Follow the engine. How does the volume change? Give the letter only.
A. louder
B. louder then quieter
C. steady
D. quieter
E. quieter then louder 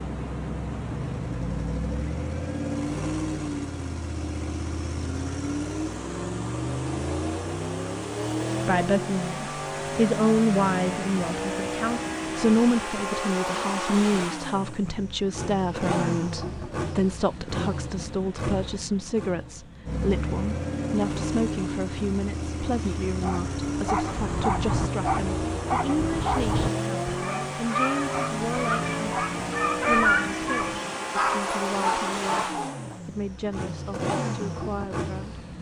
C.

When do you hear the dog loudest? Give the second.
30 s.